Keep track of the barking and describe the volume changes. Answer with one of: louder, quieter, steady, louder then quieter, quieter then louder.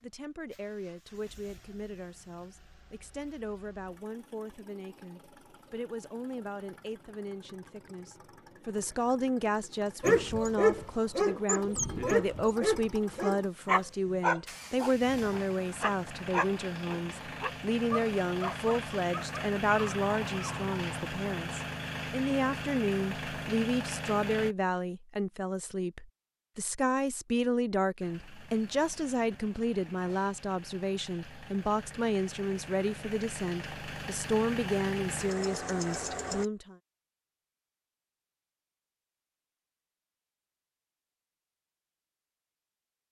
quieter.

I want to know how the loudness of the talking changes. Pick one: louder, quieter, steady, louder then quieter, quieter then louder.
louder.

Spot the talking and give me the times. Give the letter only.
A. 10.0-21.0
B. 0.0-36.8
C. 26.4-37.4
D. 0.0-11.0
B.